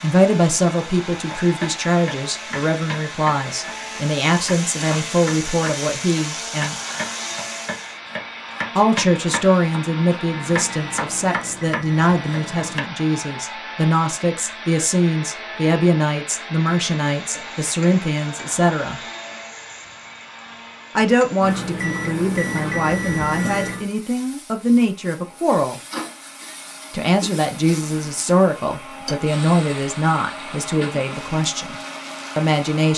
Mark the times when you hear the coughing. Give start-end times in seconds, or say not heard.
not heard.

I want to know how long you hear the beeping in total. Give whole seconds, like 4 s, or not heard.
5 s.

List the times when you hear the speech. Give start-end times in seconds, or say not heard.
0.0-6.8, 8.8-19.0, 20.9-25.8, 26.9-31.8, 32.4-32.9.